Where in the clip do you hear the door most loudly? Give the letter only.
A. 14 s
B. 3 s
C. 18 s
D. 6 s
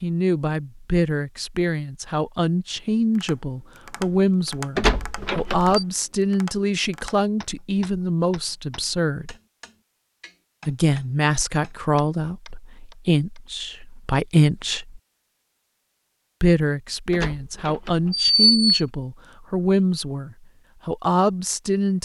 C.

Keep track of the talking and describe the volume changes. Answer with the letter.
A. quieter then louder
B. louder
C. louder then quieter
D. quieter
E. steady
E.